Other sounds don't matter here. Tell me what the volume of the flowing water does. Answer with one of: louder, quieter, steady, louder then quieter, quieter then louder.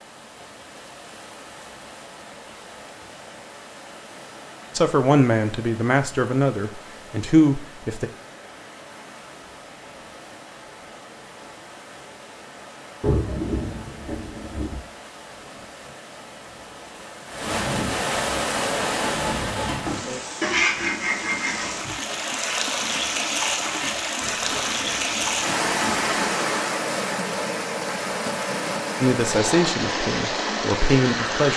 louder.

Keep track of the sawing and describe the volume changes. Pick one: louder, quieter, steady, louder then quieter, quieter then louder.
quieter.